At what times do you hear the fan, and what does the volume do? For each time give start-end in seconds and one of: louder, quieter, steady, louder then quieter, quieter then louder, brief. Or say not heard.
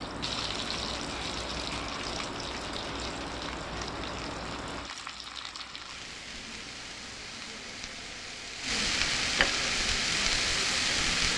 0.0-8.7 quieter.